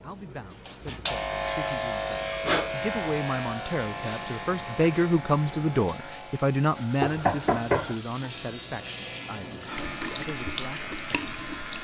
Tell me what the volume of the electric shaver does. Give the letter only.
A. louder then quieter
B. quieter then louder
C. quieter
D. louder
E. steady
C.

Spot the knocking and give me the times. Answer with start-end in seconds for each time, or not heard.
7.0-7.9.